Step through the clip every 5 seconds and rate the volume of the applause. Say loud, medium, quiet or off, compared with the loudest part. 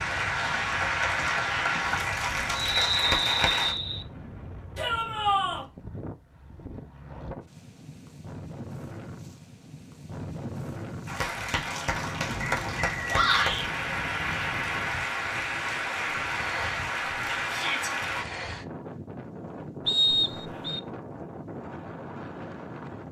loud, off, loud, loud, off.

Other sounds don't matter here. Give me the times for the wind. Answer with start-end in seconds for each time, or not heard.
0.0-23.0.